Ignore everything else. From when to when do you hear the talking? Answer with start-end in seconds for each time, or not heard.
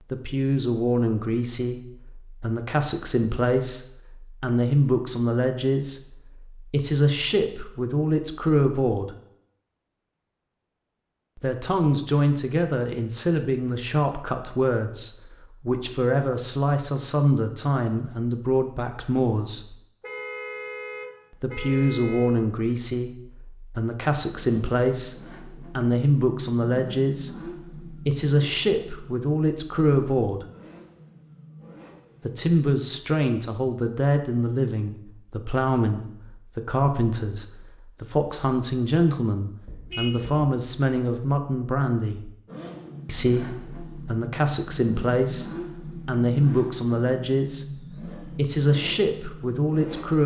0.1-9.2, 11.3-19.8, 21.4-30.4, 32.2-42.3, 43.0-50.2.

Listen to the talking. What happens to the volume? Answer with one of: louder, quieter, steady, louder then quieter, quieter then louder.
steady.